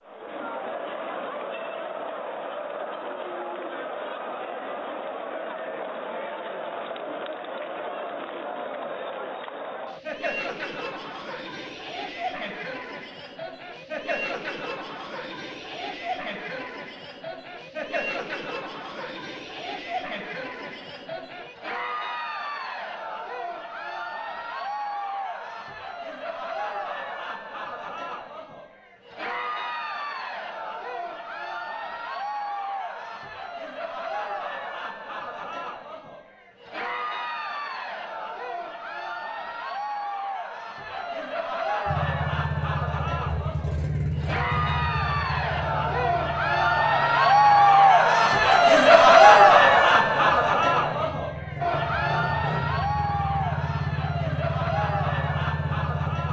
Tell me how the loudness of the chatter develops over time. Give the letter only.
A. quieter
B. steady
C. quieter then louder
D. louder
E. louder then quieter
D.